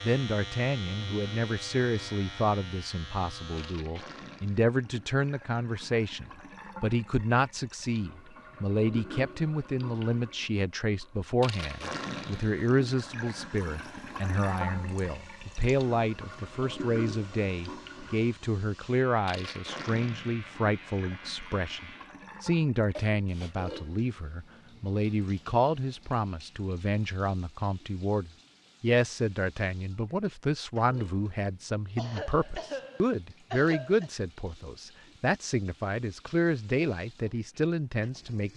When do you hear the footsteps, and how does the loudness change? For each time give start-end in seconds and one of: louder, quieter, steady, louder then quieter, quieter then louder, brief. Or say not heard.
not heard.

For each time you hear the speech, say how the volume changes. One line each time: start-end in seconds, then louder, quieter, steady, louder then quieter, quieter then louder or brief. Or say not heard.
0.0-38.5 steady.